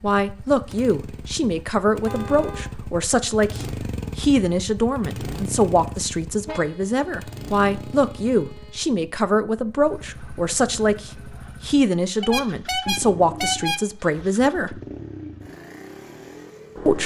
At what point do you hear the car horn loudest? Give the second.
14 s.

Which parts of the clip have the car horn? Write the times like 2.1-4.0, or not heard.
2.0-2.6, 6.5-8.8, 12.2-14.2.